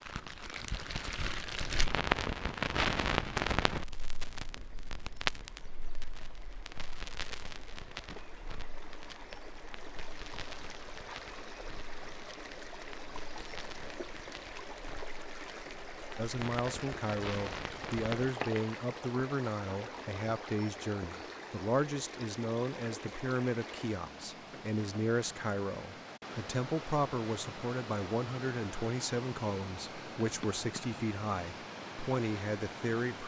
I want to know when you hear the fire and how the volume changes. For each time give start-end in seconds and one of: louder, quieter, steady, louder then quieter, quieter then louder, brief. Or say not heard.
0.0-18.7 quieter then louder.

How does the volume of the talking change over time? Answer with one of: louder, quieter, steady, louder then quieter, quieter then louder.
steady.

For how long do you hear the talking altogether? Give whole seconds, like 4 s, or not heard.
17 s.